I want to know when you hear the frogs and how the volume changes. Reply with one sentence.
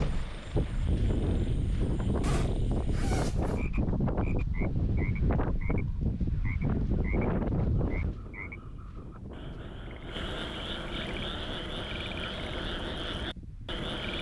You can hear the frogs from 0.1 to 14.1 s, getting louder.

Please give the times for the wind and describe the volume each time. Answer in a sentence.
The wind can be heard from 0.0 to 14.1 s, getting quieter.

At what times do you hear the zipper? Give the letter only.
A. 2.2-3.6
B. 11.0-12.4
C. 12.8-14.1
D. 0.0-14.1
A.